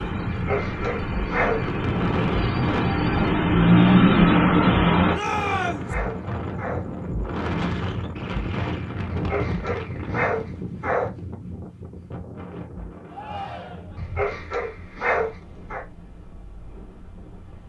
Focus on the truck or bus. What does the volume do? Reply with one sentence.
The loudness of the truck or bus goes up.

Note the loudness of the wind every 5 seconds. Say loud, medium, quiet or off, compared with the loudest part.
loud, loud, medium, quiet.